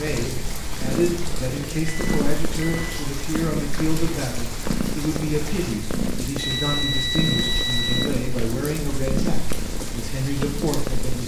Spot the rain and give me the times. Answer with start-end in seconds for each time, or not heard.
0.0-11.2.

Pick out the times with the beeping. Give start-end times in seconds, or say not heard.
1.9-2.9, 6.3-8.1.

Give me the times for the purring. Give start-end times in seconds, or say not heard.
0.1-11.2.